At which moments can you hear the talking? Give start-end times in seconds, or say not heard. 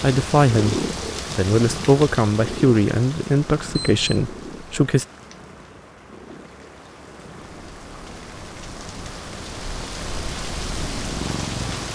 0.0-5.0.